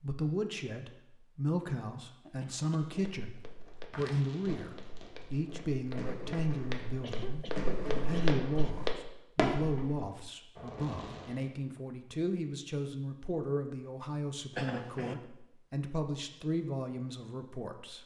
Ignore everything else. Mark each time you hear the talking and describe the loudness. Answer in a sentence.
You can hear the talking from 0.0 to 18.0 s, at a steady volume.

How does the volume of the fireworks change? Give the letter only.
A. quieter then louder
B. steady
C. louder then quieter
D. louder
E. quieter
C.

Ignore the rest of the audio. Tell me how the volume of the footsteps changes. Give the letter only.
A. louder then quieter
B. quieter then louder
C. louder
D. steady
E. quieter
B.